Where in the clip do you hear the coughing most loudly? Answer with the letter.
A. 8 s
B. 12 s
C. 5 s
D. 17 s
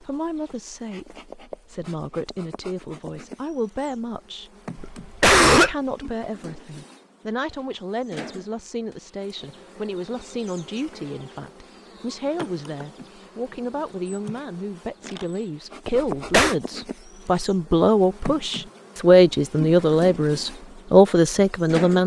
C.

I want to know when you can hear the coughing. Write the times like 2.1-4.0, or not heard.
4.8-5.8, 15.9-16.6.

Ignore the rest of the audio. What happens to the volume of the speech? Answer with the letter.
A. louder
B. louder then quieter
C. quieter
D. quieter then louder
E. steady
A.